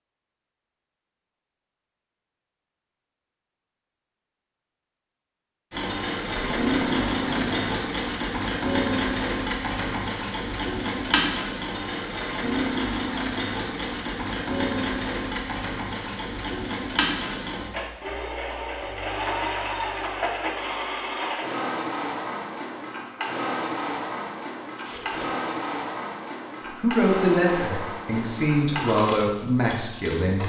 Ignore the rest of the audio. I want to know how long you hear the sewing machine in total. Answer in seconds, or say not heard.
25 s.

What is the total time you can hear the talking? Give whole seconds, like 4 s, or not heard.
4 s.